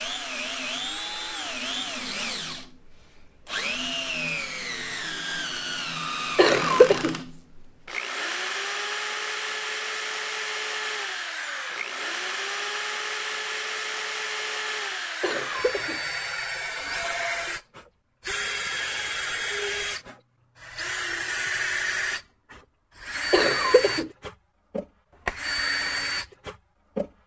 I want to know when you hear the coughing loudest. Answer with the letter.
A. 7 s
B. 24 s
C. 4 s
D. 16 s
A.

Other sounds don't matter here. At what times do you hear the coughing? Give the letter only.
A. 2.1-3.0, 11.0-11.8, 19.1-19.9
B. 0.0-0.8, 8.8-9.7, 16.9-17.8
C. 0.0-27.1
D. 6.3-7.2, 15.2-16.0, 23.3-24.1
D.